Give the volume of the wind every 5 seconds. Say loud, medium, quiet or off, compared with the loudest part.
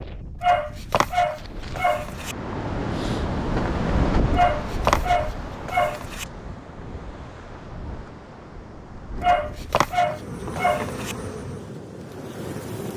loud, medium, medium.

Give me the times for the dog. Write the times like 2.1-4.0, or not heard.
0.4-2.4, 4.3-6.2, 9.2-11.2.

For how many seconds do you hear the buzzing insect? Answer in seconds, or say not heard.
3 s.